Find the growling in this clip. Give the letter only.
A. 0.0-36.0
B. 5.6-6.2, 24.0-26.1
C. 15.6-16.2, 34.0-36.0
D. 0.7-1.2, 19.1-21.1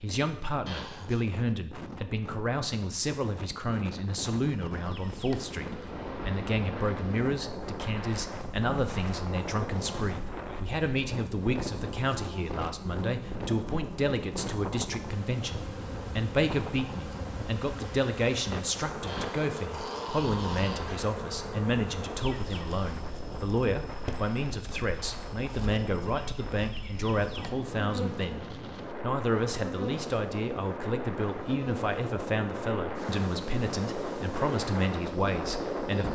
D.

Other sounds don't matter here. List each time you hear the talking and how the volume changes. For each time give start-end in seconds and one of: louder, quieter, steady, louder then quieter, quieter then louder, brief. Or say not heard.
0.0-36.0 steady.